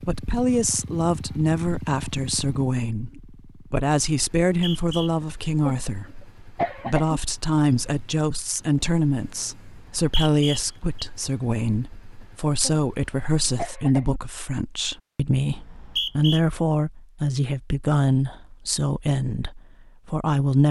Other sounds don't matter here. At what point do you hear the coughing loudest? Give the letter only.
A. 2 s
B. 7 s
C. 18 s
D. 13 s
B.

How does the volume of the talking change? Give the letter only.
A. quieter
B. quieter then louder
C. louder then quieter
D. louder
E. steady
E.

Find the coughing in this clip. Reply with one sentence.
You can hear the coughing from 5.2 to 5.8 s, from 6.5 to 7.2 s, from 12.2 to 12.8 s and from 13.6 to 14.2 s.